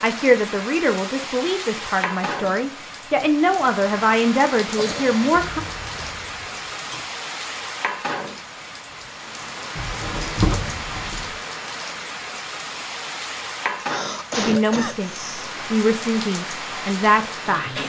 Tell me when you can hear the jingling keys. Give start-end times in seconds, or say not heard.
5.3-7.1, 9.8-11.3.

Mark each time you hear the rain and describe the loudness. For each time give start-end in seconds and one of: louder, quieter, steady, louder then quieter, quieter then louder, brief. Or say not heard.
0.0-17.8 steady.